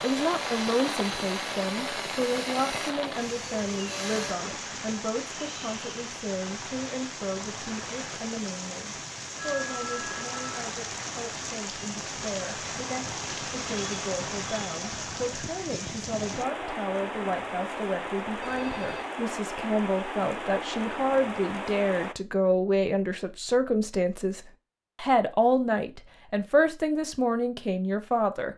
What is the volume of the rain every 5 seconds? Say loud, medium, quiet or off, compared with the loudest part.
loud, loud, loud, loud, loud, off.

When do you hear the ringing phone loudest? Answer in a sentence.
The volume of the ringing phone peaks at 10 seconds.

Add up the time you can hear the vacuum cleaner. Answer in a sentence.
The vacuum cleaner can be heard for 4 seconds in total.